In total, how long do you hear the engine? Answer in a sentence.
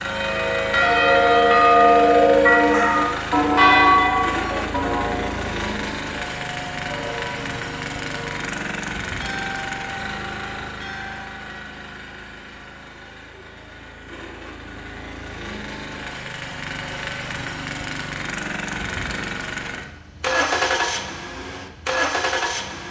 You can hear the engine for 23 seconds altogether.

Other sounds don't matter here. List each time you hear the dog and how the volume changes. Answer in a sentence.
The dog can't be heard in this clip.